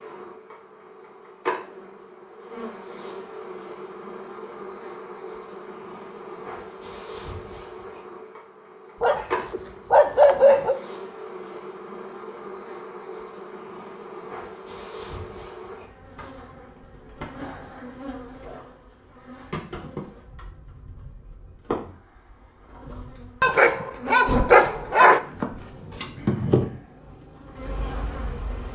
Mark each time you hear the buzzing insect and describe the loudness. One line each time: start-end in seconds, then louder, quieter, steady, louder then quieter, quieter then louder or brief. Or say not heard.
0.0-28.7 louder.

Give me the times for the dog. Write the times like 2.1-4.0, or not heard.
9.0-10.8, 23.4-25.2.